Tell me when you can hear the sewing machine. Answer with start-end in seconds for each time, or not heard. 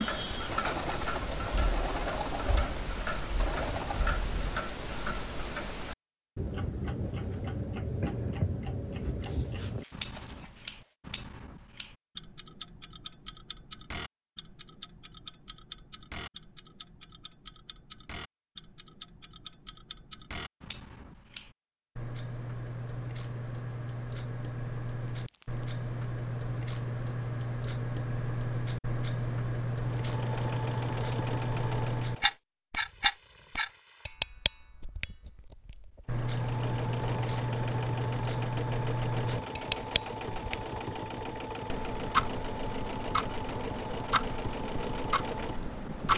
0.0-4.2, 29.8-32.4, 36.0-46.1.